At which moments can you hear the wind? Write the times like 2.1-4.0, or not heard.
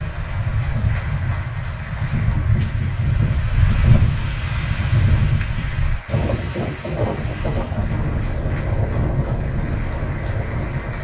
0.0-11.0.